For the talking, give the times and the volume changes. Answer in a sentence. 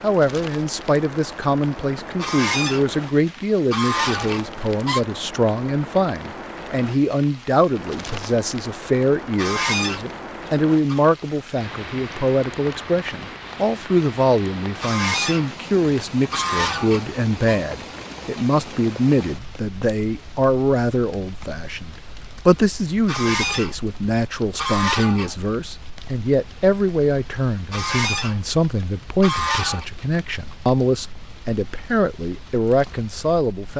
You can hear the talking from 0.0 to 33.7 s, at a steady volume.